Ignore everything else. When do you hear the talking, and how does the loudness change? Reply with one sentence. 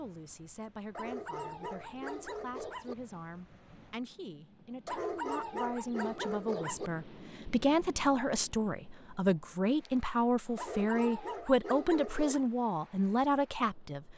You can hear the talking from 0.0 to 14.1 s, getting louder.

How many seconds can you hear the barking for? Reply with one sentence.
The barking can be heard for 6 seconds in total.